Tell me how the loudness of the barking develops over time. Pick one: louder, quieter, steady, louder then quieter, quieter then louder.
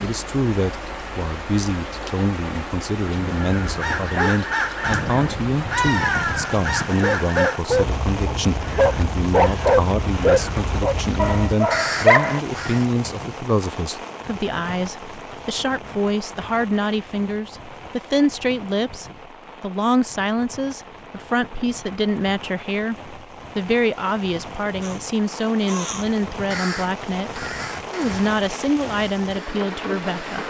louder then quieter.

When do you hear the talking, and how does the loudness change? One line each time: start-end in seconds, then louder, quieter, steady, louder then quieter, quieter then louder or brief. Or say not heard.
0.0-30.4 steady.